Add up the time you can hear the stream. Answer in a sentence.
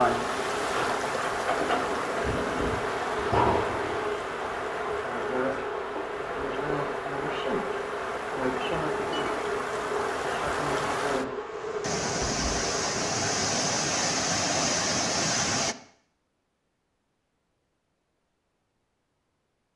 The stream can be heard for 16 seconds in total.